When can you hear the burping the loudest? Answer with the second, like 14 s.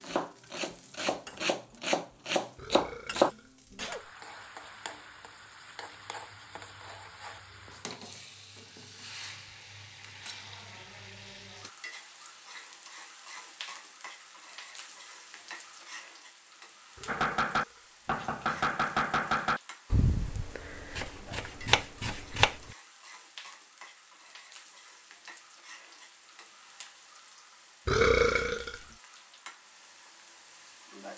28 s.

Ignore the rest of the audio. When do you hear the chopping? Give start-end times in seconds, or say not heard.
0.0-3.3, 17.1-22.8.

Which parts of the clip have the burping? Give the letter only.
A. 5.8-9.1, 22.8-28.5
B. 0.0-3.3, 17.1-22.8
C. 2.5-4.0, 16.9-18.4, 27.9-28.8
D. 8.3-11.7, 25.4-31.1
C.